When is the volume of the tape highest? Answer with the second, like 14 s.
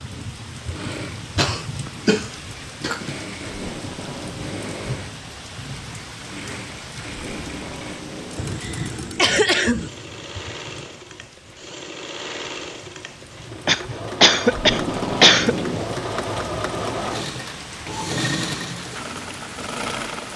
15 s.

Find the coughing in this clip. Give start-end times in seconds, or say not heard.
1.4-3.1, 8.3-9.9, 13.7-15.6.